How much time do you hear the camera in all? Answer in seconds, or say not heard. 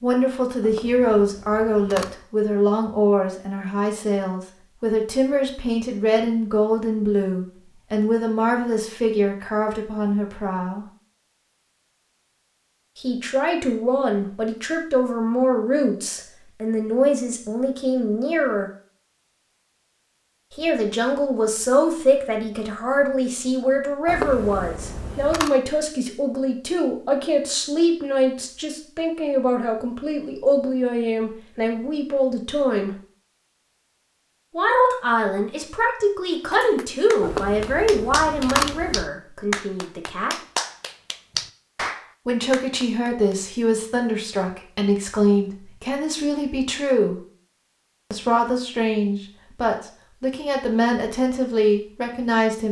5 s.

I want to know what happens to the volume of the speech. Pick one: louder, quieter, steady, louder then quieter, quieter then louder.
steady.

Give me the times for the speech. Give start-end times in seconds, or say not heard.
0.0-10.8, 12.9-18.7, 20.6-32.9, 34.5-40.4, 42.2-47.2, 48.1-52.6.